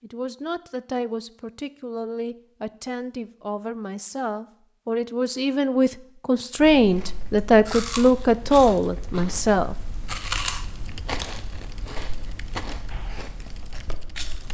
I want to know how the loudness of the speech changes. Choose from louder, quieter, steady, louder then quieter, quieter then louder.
louder.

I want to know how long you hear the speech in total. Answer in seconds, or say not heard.
10 s.